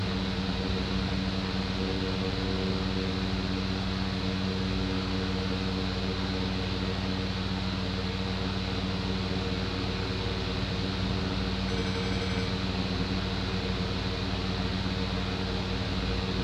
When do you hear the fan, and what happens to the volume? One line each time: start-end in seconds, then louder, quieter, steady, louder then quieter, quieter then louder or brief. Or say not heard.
0.0-16.4 steady.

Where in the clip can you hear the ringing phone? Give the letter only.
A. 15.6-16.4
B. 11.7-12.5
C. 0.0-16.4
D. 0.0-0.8
B.